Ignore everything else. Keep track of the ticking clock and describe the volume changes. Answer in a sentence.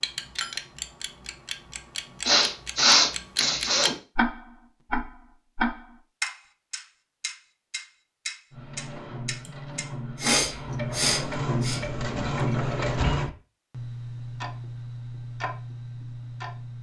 The volume of the ticking clock goes up, then down.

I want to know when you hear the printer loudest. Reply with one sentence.
The volume of the printer peaks at 13 seconds.